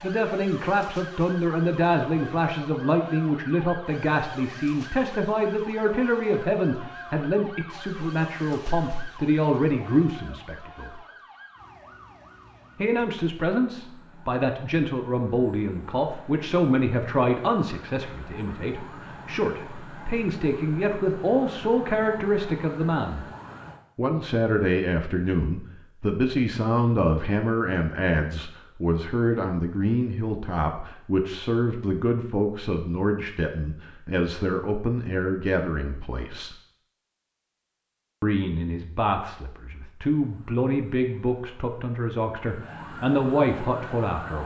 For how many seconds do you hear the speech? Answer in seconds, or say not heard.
40 s.